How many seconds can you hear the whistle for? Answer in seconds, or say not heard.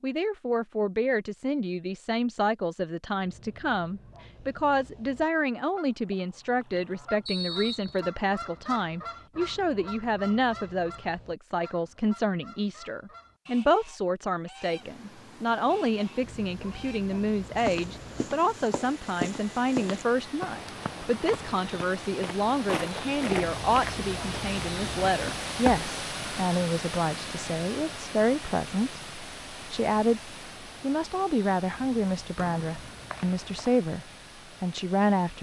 2 s.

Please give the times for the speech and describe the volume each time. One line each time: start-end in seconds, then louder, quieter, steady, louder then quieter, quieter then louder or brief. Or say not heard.
0.0-35.3 steady.